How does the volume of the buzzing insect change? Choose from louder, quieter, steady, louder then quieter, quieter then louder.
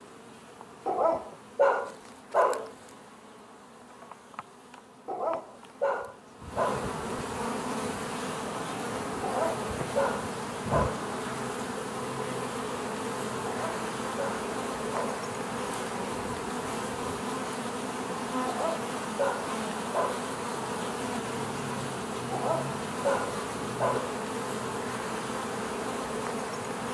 louder.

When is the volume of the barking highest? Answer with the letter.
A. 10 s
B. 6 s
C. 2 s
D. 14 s
C.